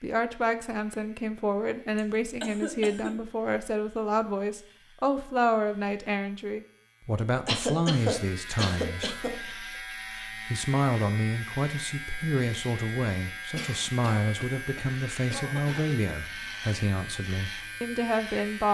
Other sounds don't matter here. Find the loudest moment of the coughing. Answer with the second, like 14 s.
8 s.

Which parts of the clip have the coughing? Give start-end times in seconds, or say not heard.
1.9-3.1, 7.5-9.3, 13.6-15.9.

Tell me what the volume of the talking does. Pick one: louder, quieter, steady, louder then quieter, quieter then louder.
steady.